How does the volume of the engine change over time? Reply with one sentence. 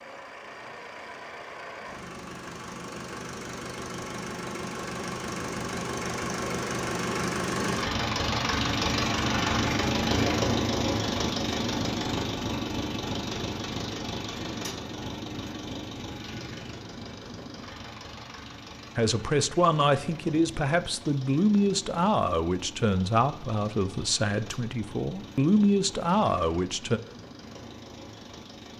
The volume of the engine goes up, then down.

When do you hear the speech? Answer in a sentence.
The speech can be heard from 18.9 to 27.0 s.